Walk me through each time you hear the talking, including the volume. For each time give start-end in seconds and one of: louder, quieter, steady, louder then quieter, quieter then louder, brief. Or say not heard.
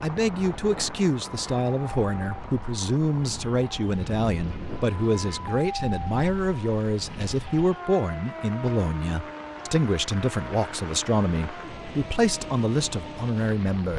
0.0-13.9 steady.